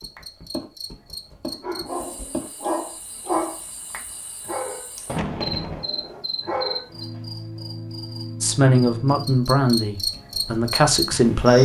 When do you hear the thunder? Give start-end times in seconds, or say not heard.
5.0-5.8.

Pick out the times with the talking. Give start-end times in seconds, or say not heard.
8.4-11.6.